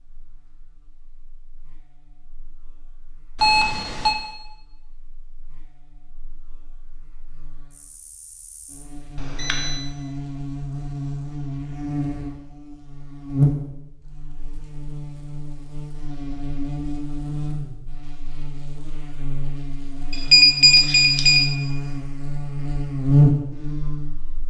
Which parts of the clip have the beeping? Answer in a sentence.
You can hear the beeping from 3.4 to 4.2 s, from 9.2 to 9.8 s and from 20.1 to 21.4 s.